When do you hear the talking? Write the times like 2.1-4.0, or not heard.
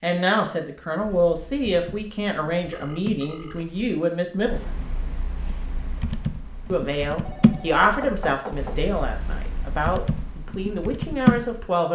0.0-4.7, 6.7-11.9.